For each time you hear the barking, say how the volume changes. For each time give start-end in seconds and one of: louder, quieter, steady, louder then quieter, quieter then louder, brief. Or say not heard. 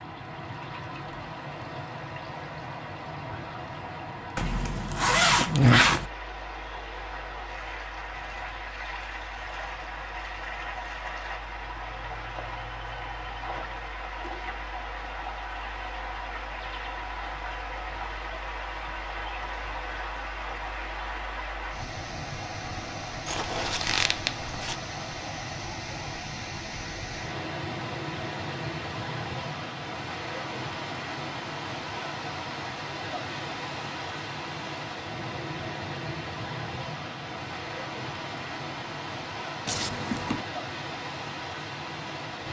not heard.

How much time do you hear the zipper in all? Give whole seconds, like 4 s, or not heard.
4 s.